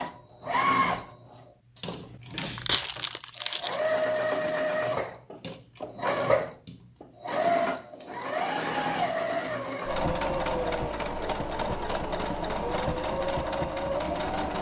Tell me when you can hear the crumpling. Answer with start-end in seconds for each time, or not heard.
2.3-4.0.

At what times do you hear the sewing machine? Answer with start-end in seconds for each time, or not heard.
0.0-14.5.